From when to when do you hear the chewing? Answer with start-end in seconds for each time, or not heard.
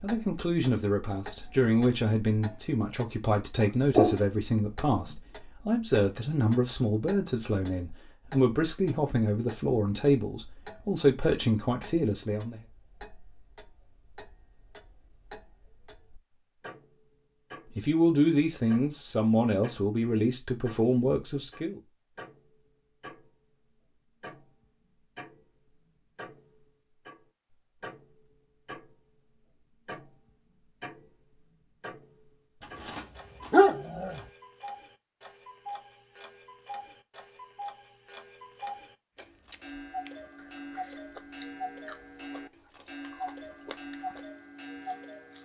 39.4-45.3.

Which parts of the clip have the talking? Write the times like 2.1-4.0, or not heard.
0.0-12.6, 17.8-21.8.